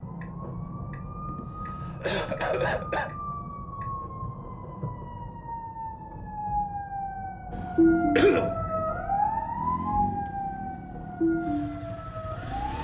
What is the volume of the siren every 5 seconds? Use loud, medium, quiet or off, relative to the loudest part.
medium, loud, loud.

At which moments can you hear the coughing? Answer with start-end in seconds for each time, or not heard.
1.2-3.1, 8.2-8.8.